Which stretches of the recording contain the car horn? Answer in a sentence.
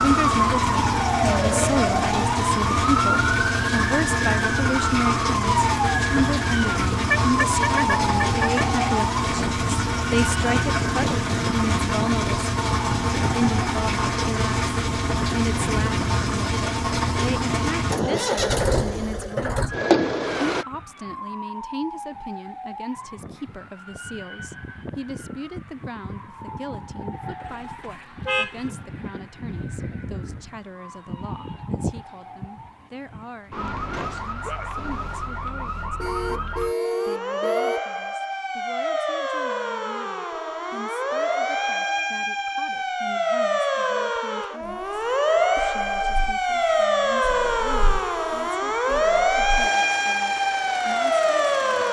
The car horn can be heard from 7.1 to 8.7 s, from 27.4 to 28.7 s and from 36.0 to 37.9 s.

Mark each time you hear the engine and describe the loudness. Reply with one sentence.
The engine can be heard from 0.0 to 20.6 s, at a steady volume; and from 44.6 to 51.8 s, getting louder.